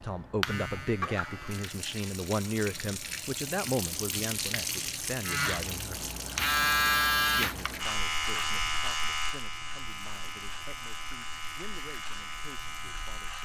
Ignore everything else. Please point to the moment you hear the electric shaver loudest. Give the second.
7 s.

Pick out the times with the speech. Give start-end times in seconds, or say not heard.
0.0-6.1, 7.3-13.4.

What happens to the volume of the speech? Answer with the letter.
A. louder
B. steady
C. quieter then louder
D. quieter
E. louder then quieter
D.